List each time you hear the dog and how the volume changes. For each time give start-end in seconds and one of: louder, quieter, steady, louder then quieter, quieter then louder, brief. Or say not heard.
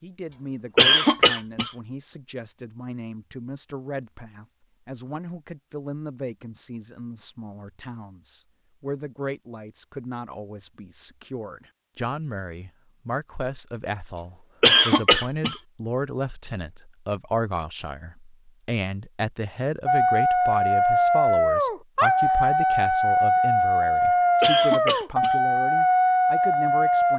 19.9-27.1 steady.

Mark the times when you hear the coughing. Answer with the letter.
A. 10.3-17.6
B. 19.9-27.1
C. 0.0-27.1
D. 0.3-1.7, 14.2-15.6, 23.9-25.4
D.